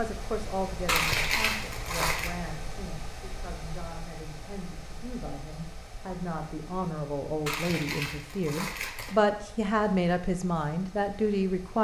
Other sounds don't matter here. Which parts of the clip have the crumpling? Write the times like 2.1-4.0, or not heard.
0.8-2.3, 7.5-9.2.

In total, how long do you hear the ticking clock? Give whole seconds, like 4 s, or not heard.
not heard.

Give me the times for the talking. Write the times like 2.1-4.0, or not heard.
0.0-11.7.